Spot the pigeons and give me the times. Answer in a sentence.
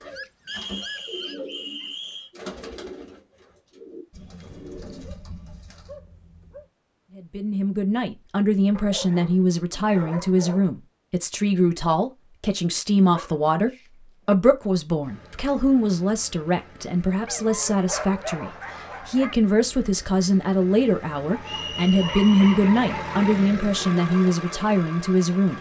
You can hear the pigeons from 0.0 to 5.9 s.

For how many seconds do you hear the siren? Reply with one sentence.
The siren can't be heard in this clip.